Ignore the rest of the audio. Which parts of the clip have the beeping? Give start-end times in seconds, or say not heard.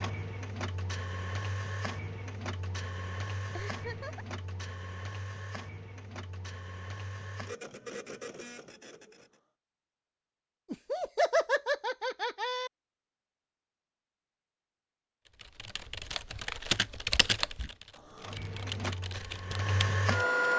not heard.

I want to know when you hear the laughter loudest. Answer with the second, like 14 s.
11 s.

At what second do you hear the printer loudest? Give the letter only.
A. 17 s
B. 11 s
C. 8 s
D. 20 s
D.